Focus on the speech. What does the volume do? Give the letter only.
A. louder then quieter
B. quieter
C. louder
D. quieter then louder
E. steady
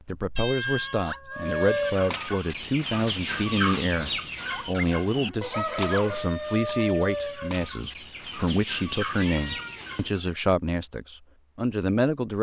E.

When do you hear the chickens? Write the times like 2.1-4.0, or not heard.
1.4-10.2.